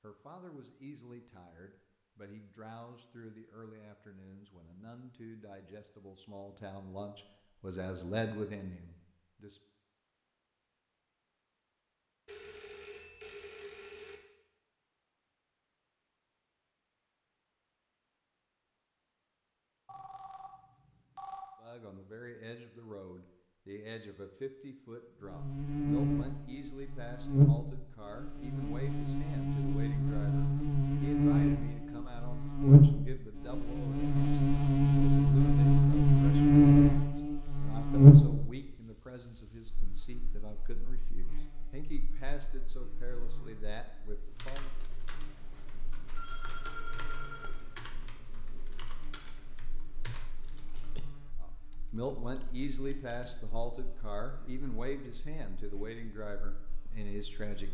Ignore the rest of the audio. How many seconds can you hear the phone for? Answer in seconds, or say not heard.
5 s.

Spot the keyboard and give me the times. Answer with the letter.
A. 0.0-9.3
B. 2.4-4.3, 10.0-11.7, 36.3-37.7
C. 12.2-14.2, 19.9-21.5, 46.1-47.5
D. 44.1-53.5
D.